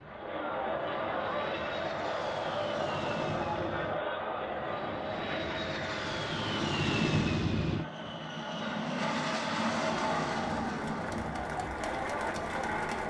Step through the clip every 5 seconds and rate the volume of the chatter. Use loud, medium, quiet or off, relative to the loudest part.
loud, medium, loud.